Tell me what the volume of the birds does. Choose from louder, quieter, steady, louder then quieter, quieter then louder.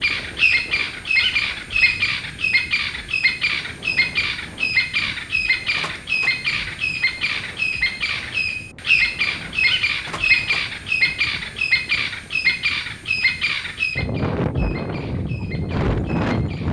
quieter.